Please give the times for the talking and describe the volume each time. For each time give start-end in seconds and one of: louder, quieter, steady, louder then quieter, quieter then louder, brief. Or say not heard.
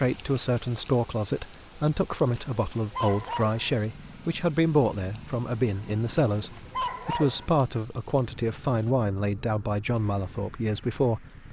0.0-11.2 steady.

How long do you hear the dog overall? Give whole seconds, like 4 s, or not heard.
3 s.